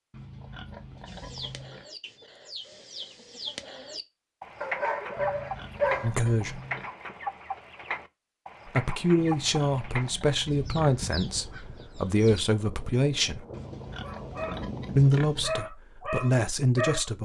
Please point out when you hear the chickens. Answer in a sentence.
You can hear the chickens from 1.1 to 12.9 s.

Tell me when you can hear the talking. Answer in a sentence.
The talking can be heard from 6.0 to 6.6 s, from 8.7 to 13.4 s and from 14.9 to 17.2 s.